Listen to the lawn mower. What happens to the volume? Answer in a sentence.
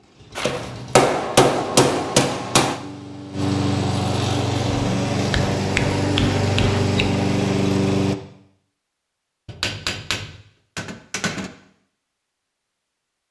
The loudness of the lawn mower goes up.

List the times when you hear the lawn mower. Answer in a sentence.
You can hear the lawn mower from 0.0 to 8.2 s.